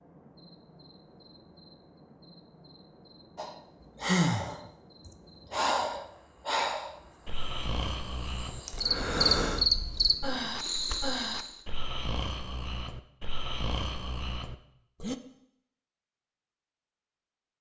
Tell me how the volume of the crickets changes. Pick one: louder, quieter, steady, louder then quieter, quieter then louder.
louder.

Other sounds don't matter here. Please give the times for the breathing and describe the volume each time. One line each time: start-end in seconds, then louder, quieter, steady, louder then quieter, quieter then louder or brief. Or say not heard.
3.4-15.2 quieter.